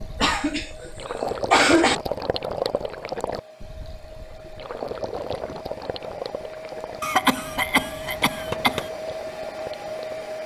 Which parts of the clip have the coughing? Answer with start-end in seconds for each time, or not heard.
0.2-2.0, 7.0-8.9.